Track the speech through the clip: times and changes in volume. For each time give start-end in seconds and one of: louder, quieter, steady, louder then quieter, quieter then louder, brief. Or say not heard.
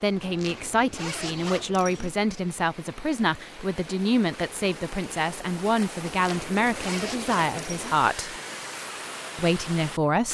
0.0-8.3 steady
9.3-10.2 brief.